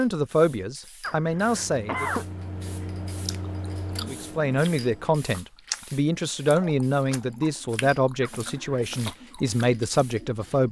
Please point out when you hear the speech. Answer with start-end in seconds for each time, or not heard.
0.0-2.1, 4.0-10.6.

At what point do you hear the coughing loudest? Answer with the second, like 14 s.
2 s.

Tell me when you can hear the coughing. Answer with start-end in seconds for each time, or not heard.
1.0-2.2, 8.2-9.2.